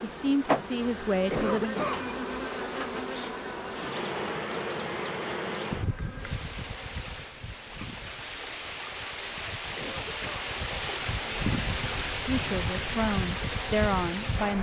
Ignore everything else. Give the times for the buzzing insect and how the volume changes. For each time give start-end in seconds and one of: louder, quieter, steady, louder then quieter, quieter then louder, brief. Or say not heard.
0.0-14.5 quieter then louder.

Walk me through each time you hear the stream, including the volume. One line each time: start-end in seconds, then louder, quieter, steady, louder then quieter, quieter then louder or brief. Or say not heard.
6.2-14.5 louder.